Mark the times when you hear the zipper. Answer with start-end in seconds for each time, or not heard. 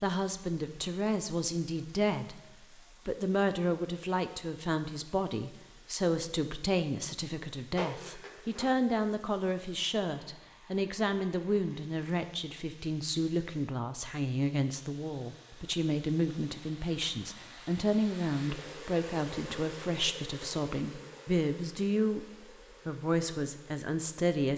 7.8-8.7.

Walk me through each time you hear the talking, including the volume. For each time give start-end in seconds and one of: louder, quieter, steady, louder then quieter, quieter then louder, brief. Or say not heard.
0.0-2.4 brief
3.0-22.2 steady
22.9-24.5 brief.